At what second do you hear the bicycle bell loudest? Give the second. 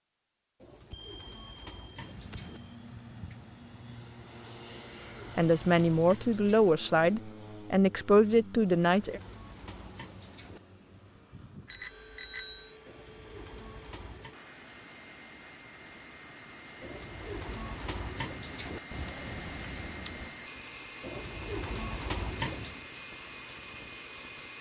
12 s.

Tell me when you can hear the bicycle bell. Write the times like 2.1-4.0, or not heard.
0.9-2.7, 11.7-12.8, 18.9-20.4.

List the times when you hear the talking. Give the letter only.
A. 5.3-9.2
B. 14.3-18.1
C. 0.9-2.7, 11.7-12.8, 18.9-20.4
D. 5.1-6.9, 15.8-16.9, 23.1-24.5
A.